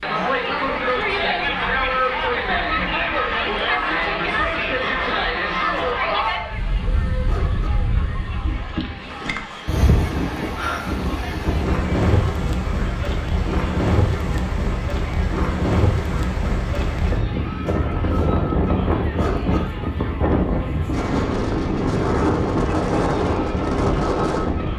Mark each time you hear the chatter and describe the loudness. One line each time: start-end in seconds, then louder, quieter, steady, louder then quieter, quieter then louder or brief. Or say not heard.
0.0-24.7 quieter.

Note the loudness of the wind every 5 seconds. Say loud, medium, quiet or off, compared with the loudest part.
quiet, medium, loud, loud, loud.